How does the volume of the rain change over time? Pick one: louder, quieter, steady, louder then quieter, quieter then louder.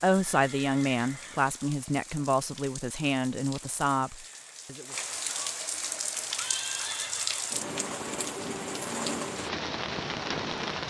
louder.